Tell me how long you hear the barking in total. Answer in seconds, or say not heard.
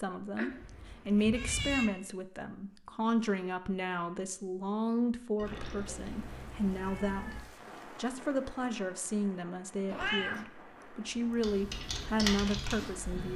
not heard.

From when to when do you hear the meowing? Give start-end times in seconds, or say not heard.
0.3-1.9, 5.3-7.4, 9.8-10.4.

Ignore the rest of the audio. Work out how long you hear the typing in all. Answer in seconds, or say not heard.
2 s.